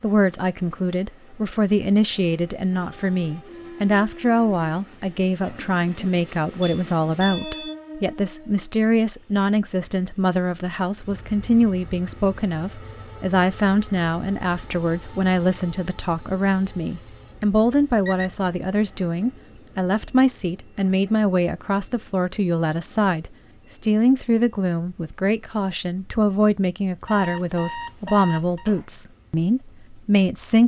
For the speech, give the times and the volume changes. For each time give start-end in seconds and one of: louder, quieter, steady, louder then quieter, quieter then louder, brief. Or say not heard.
0.0-30.6 steady.